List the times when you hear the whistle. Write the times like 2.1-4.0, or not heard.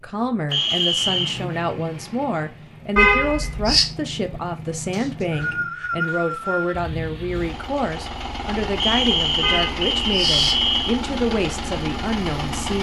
0.5-1.4, 4.9-6.8, 8.8-10.9.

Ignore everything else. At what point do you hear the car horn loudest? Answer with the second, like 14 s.
3 s.